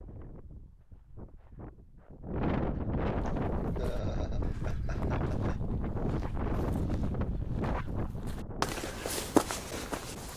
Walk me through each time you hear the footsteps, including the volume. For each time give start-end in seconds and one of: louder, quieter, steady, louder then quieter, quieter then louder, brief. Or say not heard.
3.1-10.3 louder.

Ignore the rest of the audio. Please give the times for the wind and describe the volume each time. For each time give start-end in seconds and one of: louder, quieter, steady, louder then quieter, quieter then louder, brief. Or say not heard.
0.0-10.3 louder then quieter.